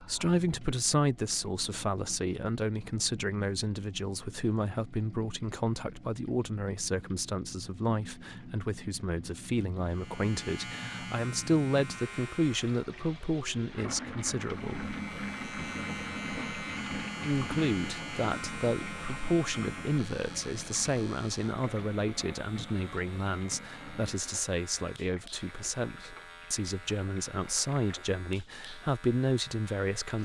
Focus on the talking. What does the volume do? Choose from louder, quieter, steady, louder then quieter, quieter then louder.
steady.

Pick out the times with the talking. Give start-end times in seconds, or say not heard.
0.0-14.9, 17.2-30.1.